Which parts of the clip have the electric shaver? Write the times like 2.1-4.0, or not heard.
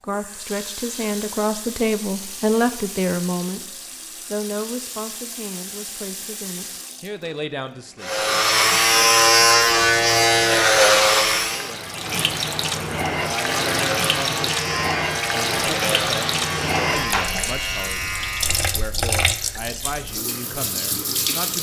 8.0-11.7, 13.1-18.9.